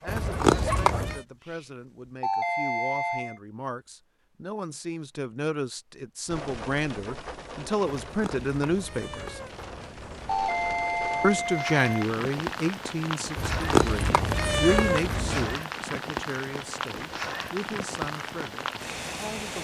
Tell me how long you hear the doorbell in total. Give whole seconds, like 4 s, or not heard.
3 s.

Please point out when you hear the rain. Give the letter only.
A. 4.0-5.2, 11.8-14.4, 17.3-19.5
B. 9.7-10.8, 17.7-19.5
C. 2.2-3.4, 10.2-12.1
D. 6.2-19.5
D.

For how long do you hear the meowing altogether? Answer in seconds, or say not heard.
6 s.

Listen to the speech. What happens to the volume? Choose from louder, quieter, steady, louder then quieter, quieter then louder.
louder then quieter.